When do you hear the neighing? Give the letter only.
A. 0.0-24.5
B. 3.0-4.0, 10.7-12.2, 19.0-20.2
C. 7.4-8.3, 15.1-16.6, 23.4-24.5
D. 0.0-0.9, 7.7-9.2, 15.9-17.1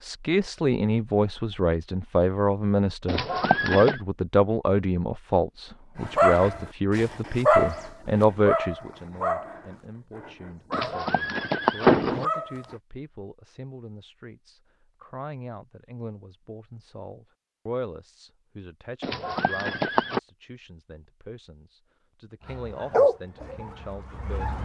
B.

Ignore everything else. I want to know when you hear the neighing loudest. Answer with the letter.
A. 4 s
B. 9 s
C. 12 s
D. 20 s
C.